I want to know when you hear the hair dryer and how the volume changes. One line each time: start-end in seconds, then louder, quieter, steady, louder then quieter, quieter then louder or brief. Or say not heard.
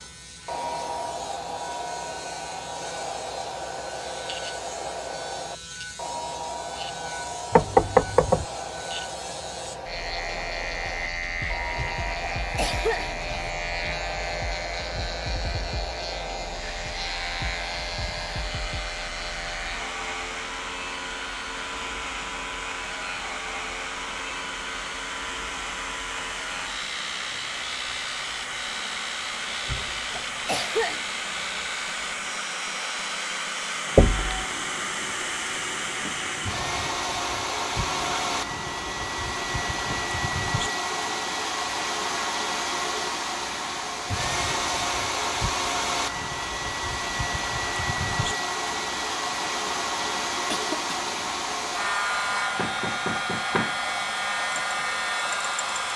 0.1-55.9 louder.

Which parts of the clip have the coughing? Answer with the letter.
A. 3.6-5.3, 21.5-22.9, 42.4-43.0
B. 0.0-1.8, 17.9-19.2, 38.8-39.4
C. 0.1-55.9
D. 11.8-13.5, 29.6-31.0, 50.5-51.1
D.